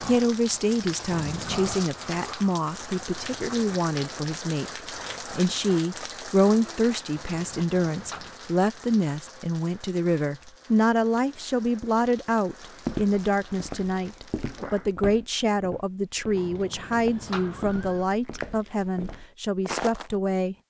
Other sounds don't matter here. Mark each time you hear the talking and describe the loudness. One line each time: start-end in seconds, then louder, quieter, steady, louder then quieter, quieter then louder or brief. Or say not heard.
0.0-20.6 steady.